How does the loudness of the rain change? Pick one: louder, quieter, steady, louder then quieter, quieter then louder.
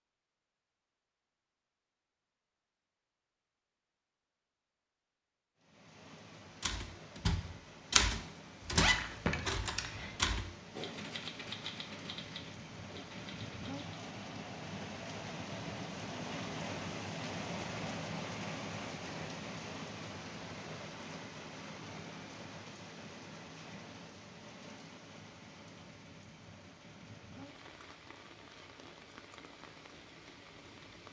louder then quieter.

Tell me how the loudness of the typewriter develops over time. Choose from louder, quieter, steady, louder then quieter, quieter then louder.
quieter.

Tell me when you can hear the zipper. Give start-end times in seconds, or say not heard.
8.7-10.2.